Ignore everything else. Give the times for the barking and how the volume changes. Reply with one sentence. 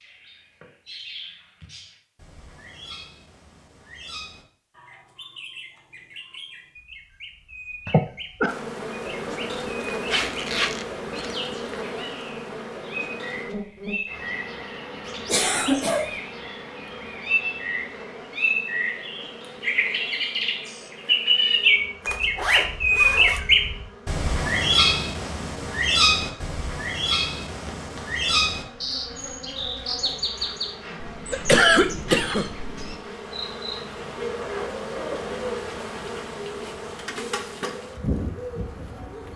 The barking can't be heard in this clip.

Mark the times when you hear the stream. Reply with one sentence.
The stream can't be heard in this clip.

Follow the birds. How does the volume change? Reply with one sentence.
The loudness of the birds goes up, then down.